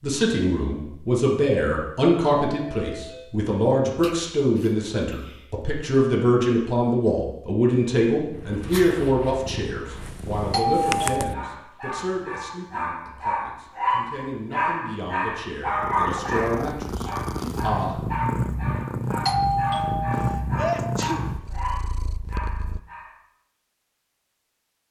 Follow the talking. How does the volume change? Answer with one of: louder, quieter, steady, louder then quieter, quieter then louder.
quieter.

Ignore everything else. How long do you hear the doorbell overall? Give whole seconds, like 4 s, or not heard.
3 s.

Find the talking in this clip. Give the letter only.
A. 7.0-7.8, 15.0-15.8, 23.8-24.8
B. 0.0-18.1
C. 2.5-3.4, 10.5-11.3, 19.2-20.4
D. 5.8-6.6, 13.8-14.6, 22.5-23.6
B.